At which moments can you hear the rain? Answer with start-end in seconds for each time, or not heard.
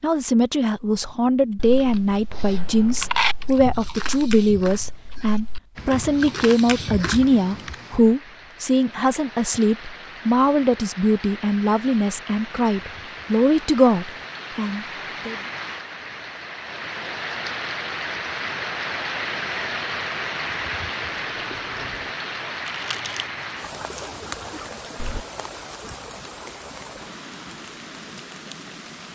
5.8-29.1.